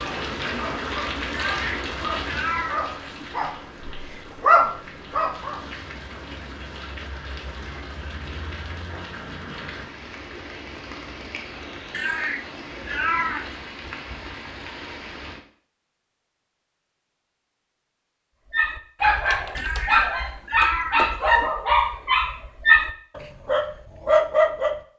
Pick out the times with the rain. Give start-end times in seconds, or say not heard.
0.0-15.4.